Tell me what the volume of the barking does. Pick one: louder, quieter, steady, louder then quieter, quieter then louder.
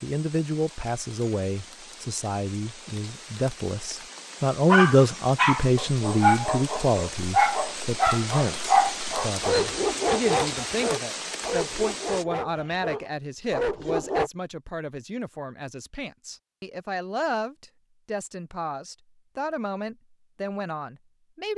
quieter.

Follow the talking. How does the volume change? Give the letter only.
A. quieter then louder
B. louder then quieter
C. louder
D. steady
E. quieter
B.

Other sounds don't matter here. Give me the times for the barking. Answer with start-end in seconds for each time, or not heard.
4.7-14.3.